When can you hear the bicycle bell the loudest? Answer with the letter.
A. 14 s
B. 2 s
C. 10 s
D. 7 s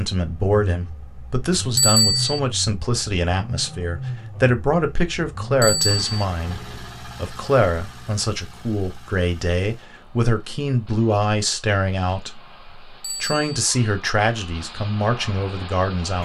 B.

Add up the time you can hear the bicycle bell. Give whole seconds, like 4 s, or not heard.
2 s.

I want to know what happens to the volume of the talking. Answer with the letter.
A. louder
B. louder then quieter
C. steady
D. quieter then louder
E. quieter
C.